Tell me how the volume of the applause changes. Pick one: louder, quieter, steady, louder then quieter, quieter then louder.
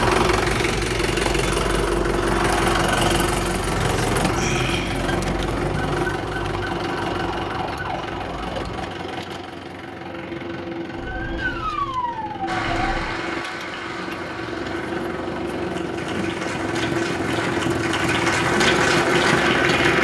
quieter then louder.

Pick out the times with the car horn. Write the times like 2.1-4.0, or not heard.
not heard.